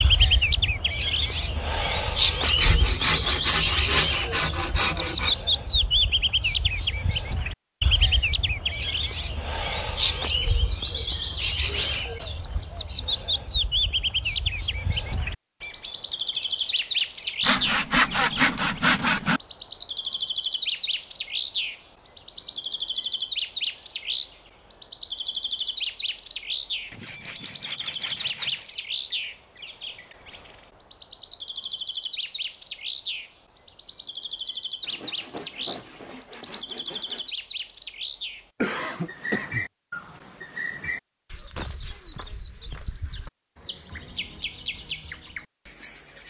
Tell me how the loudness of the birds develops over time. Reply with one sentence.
The volume of the birds goes down.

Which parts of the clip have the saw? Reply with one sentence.
The saw can be heard from 2.4 to 5.3 s, from 17.4 to 19.4 s, from 26.9 to 28.7 s and from 34.8 to 37.4 s.